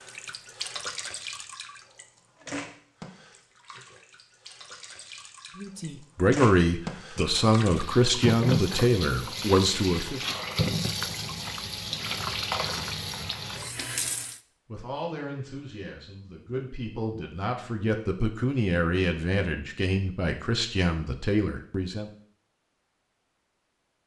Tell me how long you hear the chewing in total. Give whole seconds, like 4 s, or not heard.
not heard.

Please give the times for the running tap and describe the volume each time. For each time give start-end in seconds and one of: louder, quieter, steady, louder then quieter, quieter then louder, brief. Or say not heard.
0.0-14.4 quieter then louder.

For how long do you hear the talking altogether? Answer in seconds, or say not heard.
12 s.